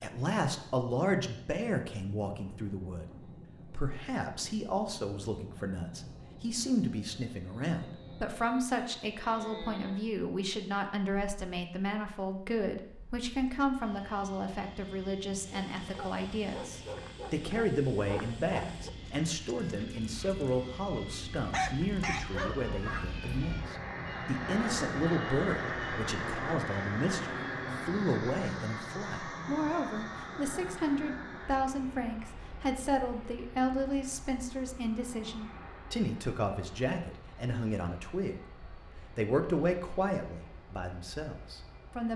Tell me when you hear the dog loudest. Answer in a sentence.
The volume of the dog peaks at 22 seconds.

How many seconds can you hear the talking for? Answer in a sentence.
The talking can be heard for 42 seconds in total.